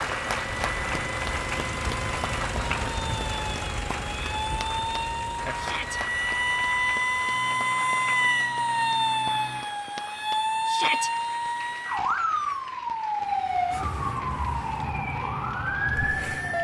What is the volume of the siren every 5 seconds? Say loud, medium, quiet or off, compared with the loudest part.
medium, loud, loud, loud.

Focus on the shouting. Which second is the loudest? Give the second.
11 s.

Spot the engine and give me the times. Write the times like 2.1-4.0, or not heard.
0.0-9.7.